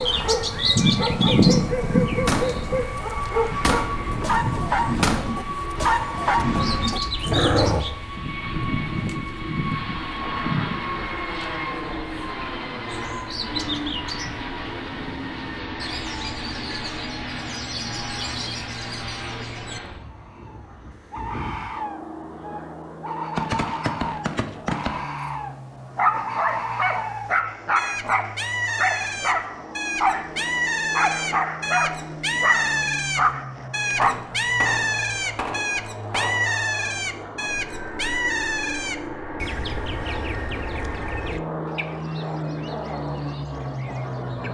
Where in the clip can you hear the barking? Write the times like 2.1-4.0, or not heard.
0.0-8.0, 25.9-34.1.